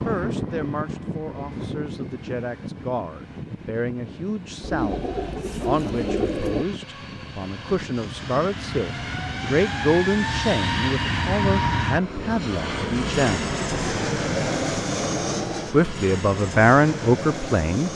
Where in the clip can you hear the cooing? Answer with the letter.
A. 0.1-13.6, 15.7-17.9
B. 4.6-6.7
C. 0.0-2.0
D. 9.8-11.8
B.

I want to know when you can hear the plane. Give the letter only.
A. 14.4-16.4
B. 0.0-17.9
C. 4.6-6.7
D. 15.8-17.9
B.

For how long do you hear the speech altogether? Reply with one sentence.
You can hear the speech for 16 seconds altogether.